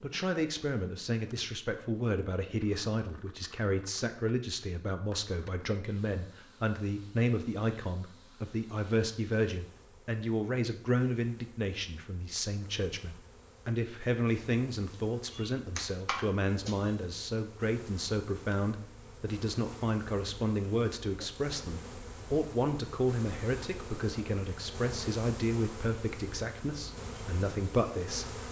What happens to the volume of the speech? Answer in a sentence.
The loudness of the speech stays about the same.